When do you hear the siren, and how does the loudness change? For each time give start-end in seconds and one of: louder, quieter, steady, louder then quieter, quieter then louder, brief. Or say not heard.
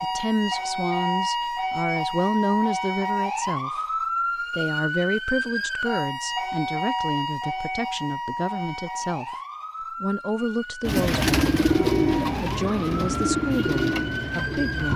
0.0-14.9 quieter.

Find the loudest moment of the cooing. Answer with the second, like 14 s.
12 s.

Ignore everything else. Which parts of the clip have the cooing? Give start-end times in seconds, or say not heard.
10.8-14.9.